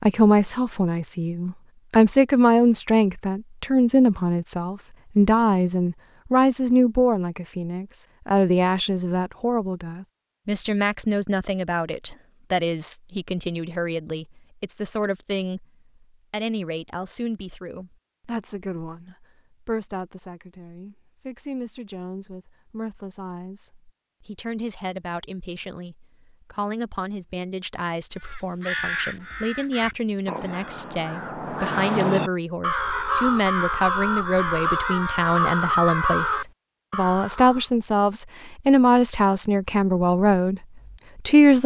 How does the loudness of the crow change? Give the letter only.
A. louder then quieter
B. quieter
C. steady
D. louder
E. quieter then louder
D.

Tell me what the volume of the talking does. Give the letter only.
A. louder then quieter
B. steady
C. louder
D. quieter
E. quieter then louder
E.